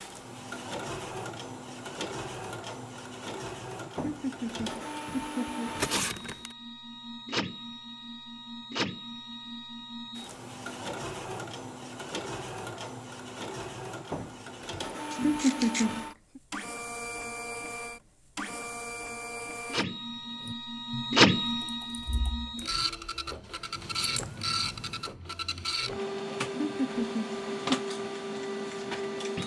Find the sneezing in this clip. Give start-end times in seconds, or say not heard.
not heard.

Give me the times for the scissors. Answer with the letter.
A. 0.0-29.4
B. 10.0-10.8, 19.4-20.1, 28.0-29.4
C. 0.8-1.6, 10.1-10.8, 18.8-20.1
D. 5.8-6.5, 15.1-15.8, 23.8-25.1
D.